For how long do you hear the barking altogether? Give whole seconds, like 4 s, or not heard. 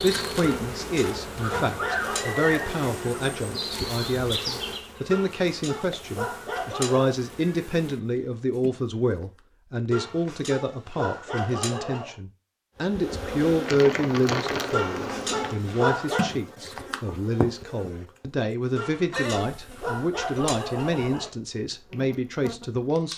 11 s.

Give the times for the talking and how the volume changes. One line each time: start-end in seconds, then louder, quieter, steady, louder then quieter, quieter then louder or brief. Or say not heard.
0.0-23.1 steady.